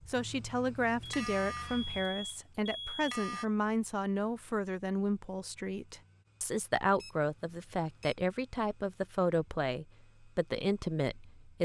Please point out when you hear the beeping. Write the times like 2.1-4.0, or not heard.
1.0-3.5, 7.0-8.2.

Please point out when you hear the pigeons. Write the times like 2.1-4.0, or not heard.
not heard.